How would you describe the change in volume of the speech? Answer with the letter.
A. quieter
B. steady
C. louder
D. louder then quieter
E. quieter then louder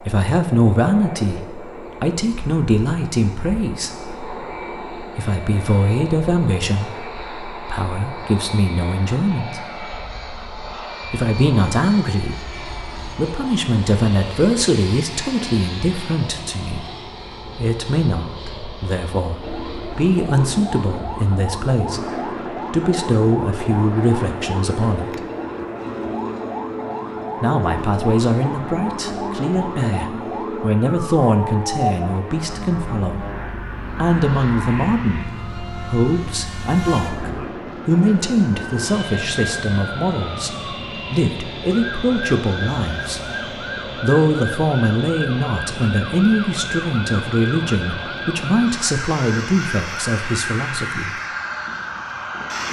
B.